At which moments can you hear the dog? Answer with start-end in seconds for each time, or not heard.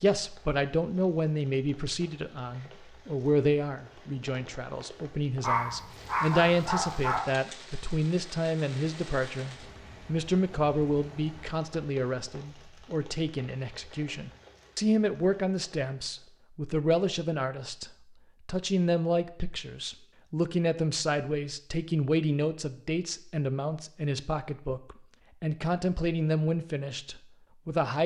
5.4-7.2.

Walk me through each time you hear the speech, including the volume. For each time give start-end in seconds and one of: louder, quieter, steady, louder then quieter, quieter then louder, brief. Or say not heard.
0.0-28.0 steady.